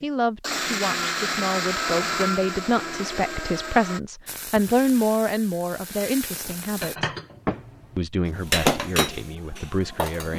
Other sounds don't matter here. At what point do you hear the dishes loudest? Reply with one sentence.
The volume of the dishes peaks at 9 seconds.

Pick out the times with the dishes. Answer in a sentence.
You can hear the dishes from 6.8 to 10.3 s.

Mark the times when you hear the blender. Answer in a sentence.
The blender can be heard from 0.0 to 4.0 s.